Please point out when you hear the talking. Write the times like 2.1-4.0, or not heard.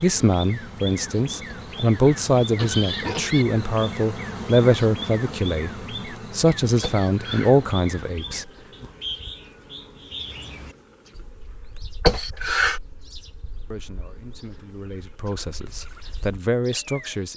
0.0-8.4, 13.7-17.3.